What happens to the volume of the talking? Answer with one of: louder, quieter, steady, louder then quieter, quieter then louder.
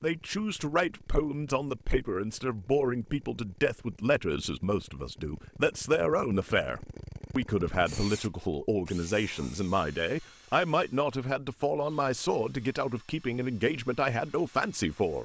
steady.